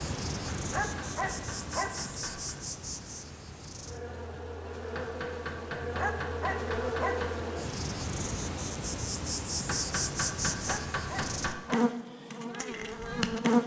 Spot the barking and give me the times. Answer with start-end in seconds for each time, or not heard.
0.7-2.1, 6.0-7.4, 10.7-12.1.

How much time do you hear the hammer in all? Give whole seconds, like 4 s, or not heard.
7 s.